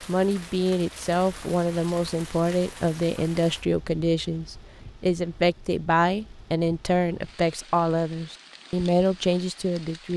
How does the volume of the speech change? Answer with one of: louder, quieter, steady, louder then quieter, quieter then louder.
steady.